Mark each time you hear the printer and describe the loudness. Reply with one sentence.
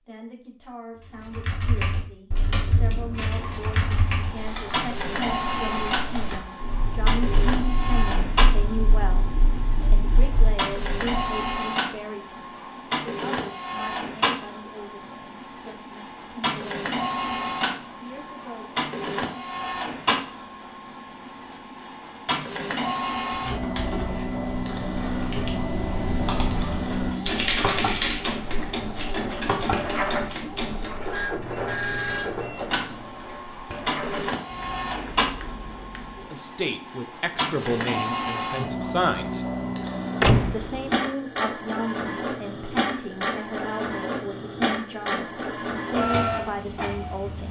The printer can be heard from 3.4 to 47.4 s, at a steady volume.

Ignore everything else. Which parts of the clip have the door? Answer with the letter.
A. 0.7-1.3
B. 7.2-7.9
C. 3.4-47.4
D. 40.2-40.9
D.